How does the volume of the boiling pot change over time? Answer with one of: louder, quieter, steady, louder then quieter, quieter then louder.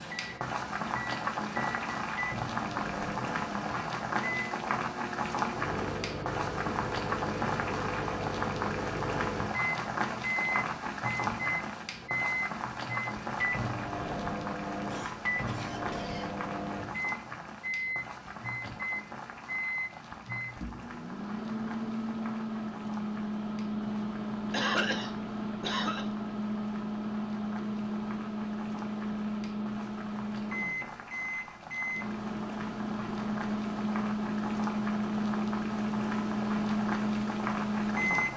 quieter then louder.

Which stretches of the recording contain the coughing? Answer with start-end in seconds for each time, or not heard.
14.8-16.4, 24.5-26.1.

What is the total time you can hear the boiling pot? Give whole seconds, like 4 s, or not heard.
38 s.